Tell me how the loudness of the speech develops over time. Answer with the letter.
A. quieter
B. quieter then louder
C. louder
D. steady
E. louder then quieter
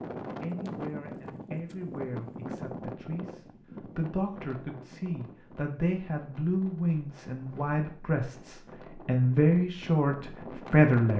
C.